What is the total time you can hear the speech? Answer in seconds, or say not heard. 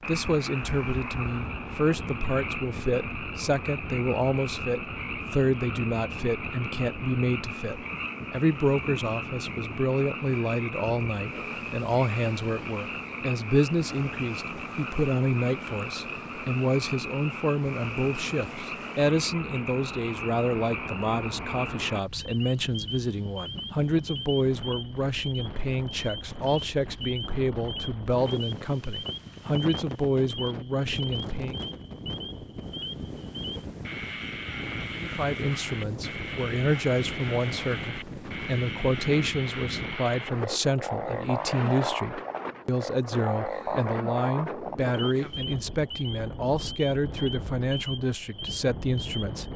46 s.